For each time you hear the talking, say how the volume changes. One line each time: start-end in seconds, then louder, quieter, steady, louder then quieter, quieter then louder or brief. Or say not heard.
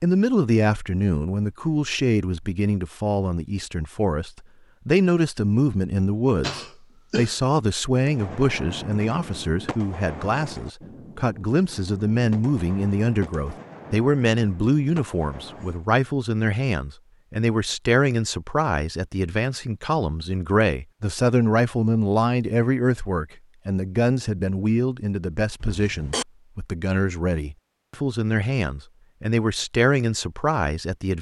0.0-31.1 steady.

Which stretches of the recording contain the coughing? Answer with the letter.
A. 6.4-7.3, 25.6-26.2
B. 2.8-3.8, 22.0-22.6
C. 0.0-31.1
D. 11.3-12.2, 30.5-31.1
A.